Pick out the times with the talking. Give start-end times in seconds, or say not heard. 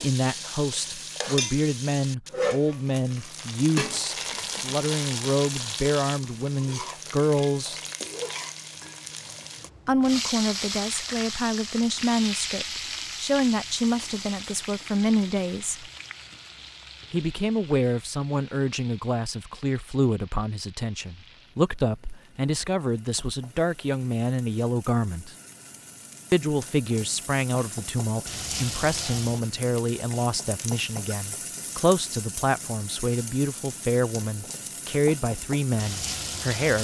0.0-7.8, 9.8-15.8, 17.1-25.4, 26.3-36.8.